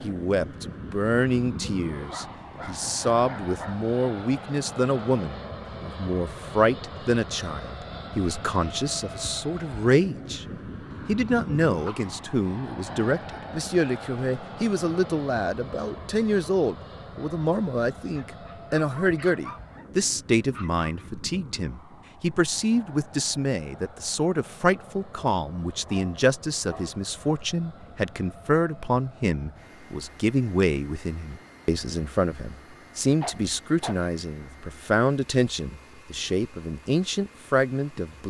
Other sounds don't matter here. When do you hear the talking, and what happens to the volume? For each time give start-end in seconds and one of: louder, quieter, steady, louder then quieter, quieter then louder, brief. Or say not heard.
0.0-10.4 steady
11.1-38.2 steady.